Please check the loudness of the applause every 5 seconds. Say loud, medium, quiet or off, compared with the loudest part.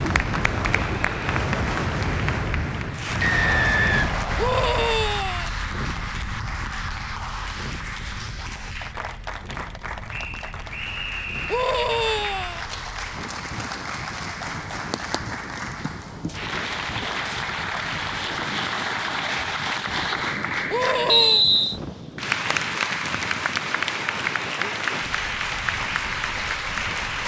loud, medium, medium, loud, loud, loud.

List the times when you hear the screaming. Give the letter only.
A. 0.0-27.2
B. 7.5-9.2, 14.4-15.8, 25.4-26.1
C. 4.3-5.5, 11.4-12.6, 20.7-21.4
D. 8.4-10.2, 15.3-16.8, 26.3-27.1
C.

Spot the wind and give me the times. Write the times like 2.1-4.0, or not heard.
0.0-27.2.